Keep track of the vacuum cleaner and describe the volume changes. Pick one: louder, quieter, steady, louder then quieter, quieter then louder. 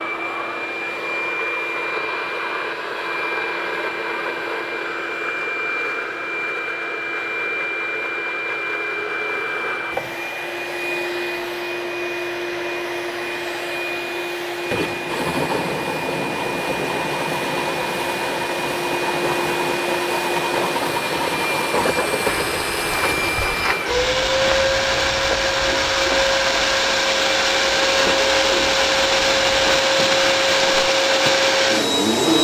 louder.